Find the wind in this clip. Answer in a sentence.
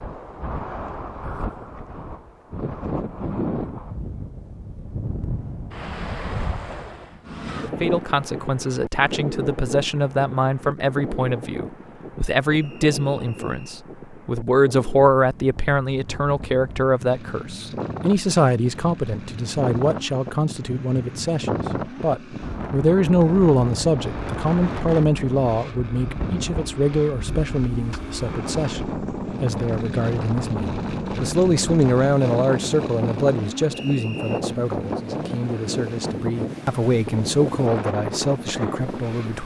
You can hear the wind from 0.0 to 39.4 s.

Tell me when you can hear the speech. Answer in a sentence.
The speech can be heard from 7.6 to 39.4 s.